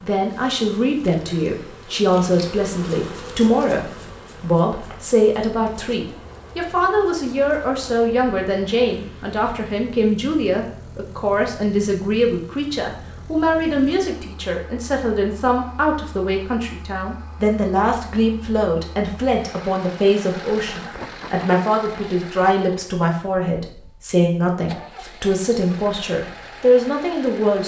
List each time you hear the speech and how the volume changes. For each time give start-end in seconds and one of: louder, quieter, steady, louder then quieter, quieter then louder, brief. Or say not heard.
0.0-27.6 steady.